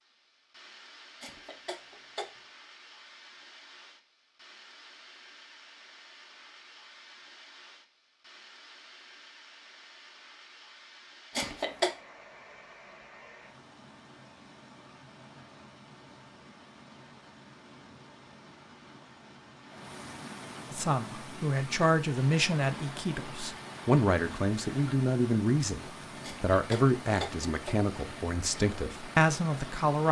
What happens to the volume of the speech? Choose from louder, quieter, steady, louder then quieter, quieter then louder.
steady.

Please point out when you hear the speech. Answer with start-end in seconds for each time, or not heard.
20.7-25.8, 26.4-30.0.